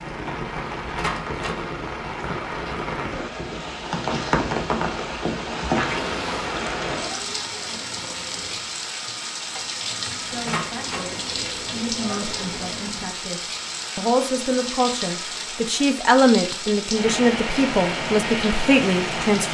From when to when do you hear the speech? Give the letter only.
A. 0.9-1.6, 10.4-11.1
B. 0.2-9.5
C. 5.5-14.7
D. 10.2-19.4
D.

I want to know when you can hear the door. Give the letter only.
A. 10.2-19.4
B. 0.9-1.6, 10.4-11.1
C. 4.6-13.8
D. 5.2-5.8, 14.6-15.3
B.